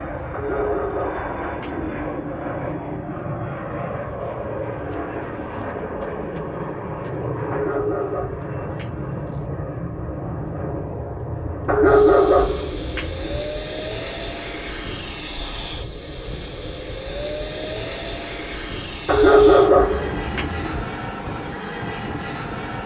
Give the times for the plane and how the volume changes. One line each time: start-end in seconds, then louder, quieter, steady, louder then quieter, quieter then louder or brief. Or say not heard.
0.0-22.8 steady.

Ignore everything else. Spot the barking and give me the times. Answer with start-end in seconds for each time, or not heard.
0.3-1.9, 7.5-9.1, 11.7-13.4, 19.1-20.8.